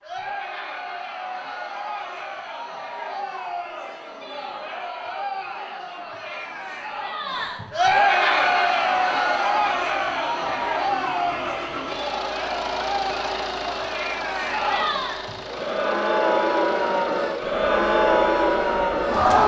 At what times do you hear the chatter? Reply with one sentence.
The chatter can be heard from 0.0 to 19.4 s.